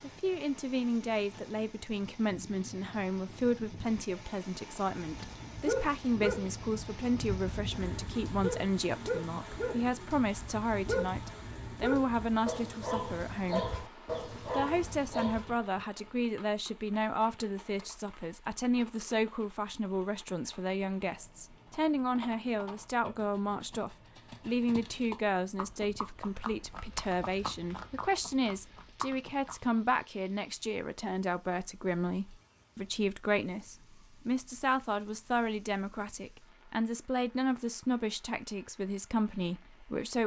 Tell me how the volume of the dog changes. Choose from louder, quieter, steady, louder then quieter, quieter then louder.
steady.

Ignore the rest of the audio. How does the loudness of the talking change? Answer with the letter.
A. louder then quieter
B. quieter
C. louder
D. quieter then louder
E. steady
E.